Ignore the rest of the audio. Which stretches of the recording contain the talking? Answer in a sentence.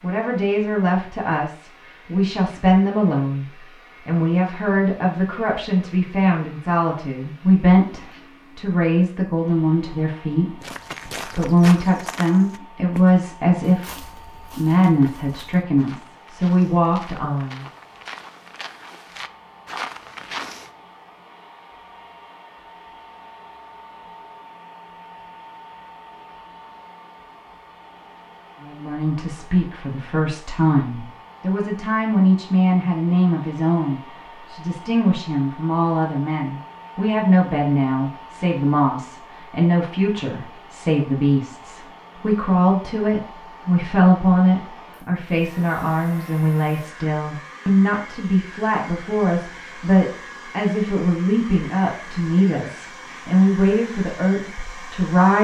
You can hear the talking from 0.0 to 17.6 s and from 28.6 to 55.3 s.